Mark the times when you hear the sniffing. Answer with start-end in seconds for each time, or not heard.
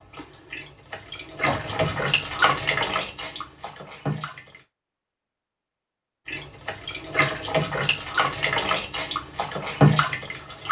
1.4-2.1.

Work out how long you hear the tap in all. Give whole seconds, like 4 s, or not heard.
9 s.